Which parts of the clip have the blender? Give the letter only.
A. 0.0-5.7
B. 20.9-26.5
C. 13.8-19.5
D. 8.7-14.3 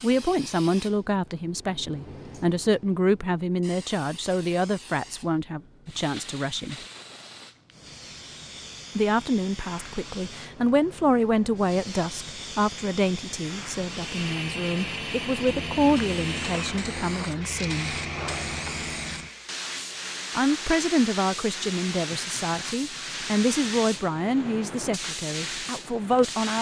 C.